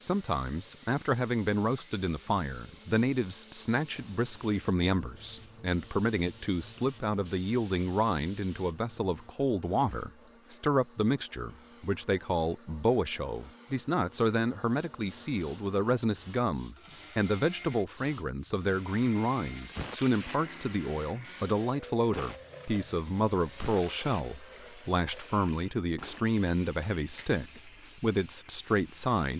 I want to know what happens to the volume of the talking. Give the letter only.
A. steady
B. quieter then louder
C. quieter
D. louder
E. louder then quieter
A.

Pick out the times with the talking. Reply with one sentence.
You can hear the talking from 0.0 to 29.3 s.